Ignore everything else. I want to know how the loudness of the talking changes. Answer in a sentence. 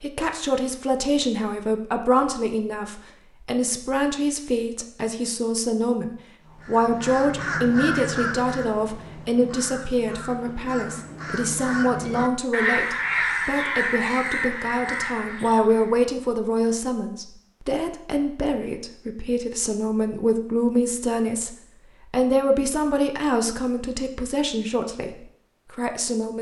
The volume of the talking stays about the same.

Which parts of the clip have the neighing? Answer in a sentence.
The neighing can't be heard in this clip.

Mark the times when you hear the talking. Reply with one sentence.
You can hear the talking from 0.0 to 26.3 s.